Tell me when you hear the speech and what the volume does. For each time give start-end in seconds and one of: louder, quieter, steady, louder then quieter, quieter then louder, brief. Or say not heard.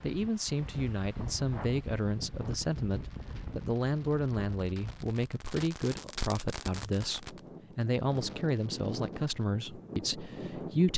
0.0-10.9 steady.